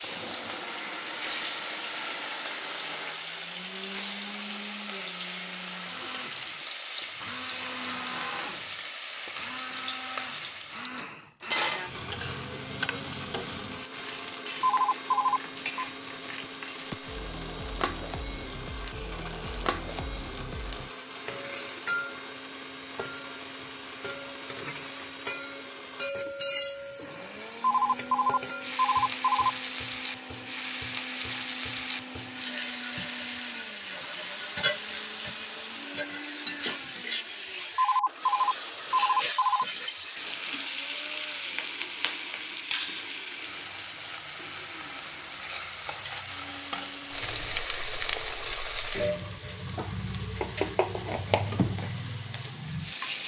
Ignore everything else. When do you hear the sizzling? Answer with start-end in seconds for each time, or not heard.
0.0-53.2.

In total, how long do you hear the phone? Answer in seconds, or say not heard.
5 s.